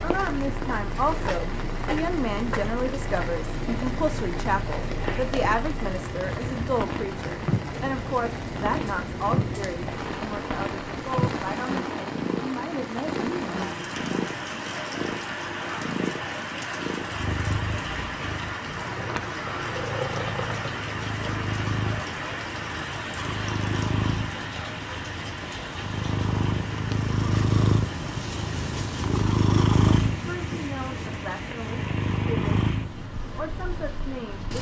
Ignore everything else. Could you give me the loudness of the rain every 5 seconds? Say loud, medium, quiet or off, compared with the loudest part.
loud, loud, loud, loud, loud, medium, medium.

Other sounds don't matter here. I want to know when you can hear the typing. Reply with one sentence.
The typing can't be heard in this clip.